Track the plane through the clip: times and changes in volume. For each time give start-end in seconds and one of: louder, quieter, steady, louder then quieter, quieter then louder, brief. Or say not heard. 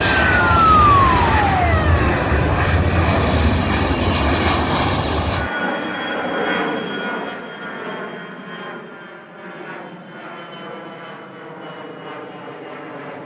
0.0-13.2 quieter.